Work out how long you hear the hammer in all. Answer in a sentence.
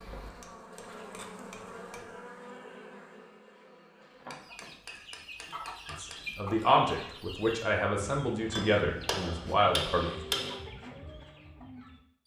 The hammer can be heard for 6 seconds in total.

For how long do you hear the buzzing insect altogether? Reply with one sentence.
The buzzing insect can be heard for 5 seconds in total.